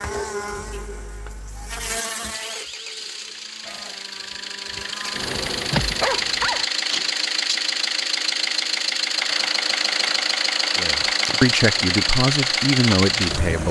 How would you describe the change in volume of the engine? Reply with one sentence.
The loudness of the engine goes up.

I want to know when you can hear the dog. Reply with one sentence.
You can hear the dog from 5.7 to 6.7 s.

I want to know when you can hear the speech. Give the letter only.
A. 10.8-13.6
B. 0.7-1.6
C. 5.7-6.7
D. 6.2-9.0
A.